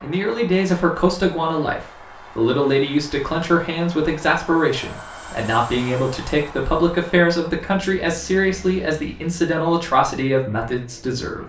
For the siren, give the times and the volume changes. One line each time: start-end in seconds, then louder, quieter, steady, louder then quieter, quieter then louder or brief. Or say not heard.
not heard.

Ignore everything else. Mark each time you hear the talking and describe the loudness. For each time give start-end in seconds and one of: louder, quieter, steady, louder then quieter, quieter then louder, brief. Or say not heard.
0.0-11.4 steady.